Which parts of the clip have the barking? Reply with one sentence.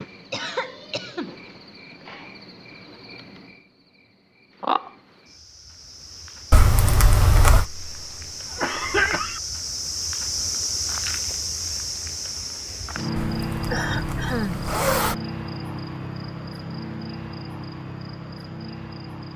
You can't hear the barking here.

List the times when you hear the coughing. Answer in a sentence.
The coughing can be heard from 0.3 to 1.4 s, from 7.5 to 9.4 s and from 13.7 to 14.6 s.